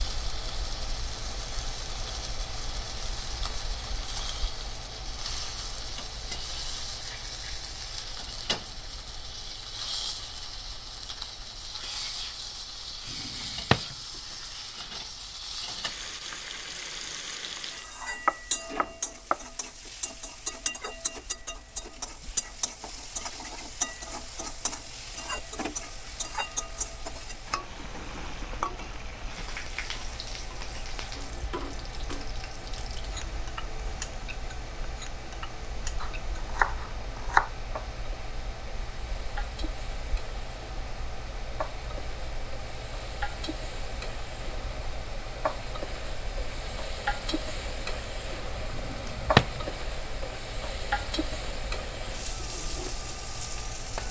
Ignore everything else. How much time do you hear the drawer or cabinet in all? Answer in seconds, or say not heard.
2 s.